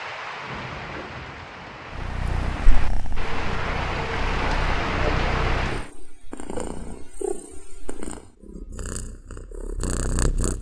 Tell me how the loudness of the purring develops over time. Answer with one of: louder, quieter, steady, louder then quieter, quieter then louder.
steady.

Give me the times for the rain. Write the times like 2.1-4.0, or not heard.
0.0-5.9.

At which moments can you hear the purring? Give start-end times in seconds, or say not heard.
1.9-10.5.